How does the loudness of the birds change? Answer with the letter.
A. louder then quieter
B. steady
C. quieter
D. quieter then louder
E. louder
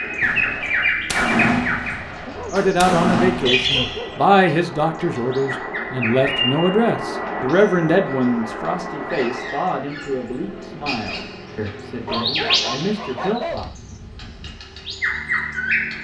D.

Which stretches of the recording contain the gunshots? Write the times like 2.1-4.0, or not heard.
0.2-4.2.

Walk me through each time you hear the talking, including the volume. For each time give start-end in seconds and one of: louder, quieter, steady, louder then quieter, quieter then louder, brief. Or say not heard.
2.5-13.8 quieter.